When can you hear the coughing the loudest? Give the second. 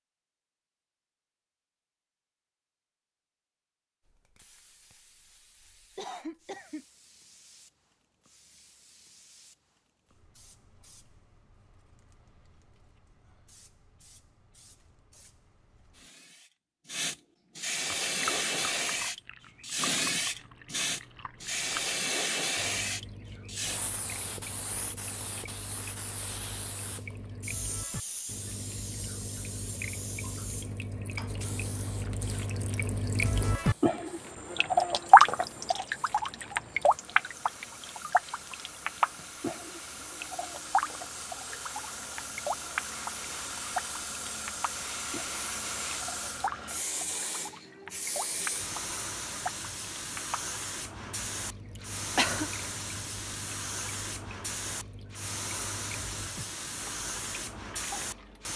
52 s.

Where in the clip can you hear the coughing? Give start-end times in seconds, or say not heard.
6.0-6.8, 51.8-52.5.